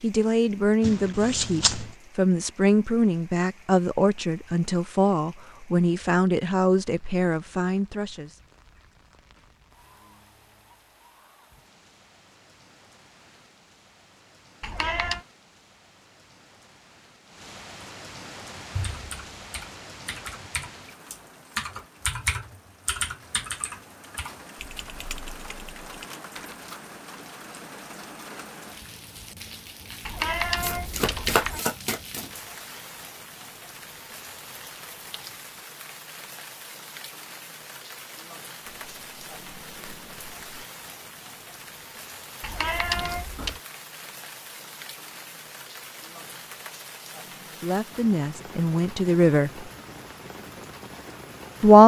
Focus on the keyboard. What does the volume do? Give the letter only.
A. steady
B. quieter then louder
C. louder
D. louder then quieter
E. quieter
D.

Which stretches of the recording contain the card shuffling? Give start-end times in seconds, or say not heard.
0.8-1.9, 30.6-32.5, 38.6-40.6.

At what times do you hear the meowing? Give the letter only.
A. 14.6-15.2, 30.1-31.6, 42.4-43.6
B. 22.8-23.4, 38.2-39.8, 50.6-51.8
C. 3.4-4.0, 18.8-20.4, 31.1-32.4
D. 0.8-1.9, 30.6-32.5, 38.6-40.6
A.